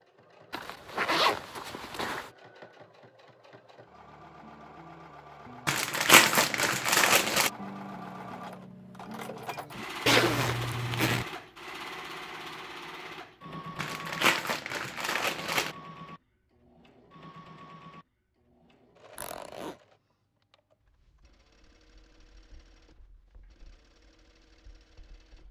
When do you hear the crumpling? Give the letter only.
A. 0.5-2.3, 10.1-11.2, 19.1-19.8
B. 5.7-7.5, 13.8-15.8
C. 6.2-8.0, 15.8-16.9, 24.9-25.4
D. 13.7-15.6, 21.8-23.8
B.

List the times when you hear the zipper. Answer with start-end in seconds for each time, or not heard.
0.5-2.3, 10.1-11.2, 19.1-19.8.